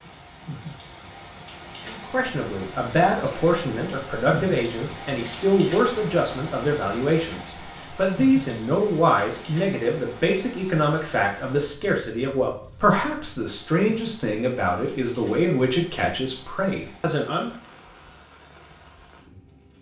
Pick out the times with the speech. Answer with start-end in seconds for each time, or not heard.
1.9-17.5.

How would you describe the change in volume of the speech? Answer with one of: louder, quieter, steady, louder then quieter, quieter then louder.
steady.